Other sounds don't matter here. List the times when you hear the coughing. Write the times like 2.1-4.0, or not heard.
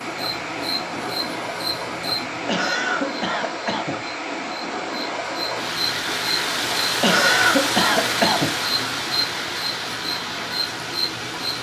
2.5-4.0, 7.0-8.6.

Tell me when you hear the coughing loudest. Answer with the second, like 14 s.
7 s.